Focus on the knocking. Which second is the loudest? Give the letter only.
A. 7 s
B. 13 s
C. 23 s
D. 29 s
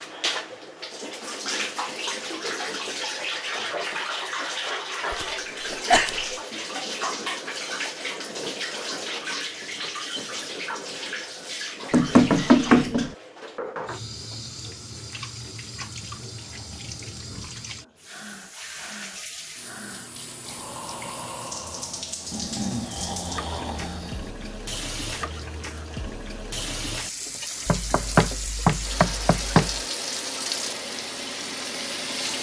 B.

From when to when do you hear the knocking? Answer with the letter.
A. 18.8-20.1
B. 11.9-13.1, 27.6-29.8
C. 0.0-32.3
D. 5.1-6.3
B.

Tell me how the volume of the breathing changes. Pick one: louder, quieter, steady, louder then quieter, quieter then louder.
louder.